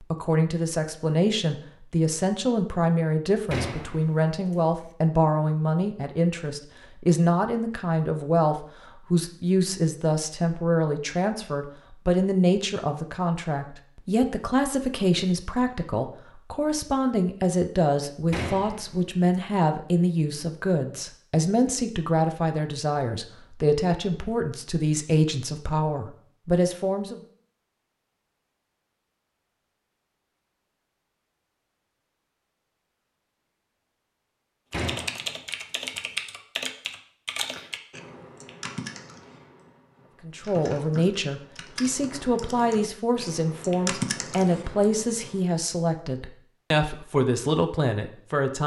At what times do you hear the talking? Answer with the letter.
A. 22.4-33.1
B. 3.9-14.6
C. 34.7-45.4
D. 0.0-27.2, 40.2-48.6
D.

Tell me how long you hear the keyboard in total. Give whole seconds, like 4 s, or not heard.
11 s.